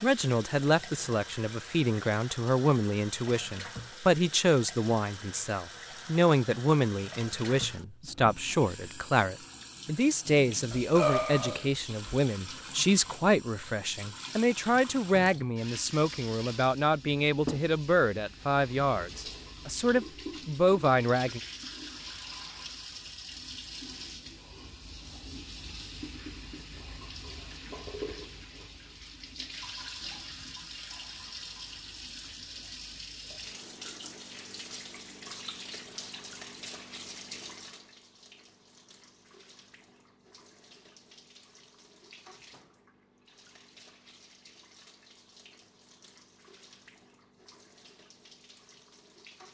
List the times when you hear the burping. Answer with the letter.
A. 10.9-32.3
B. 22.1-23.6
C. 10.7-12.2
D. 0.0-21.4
C.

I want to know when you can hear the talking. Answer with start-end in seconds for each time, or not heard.
0.0-21.4.